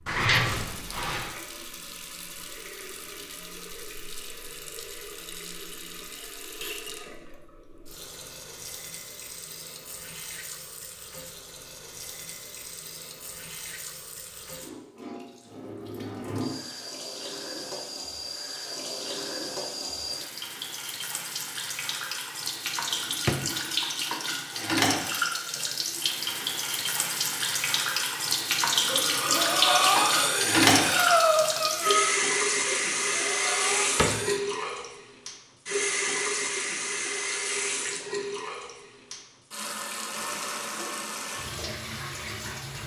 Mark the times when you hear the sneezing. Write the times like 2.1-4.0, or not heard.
not heard.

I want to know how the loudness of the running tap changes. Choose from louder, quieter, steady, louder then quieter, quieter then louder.
louder then quieter.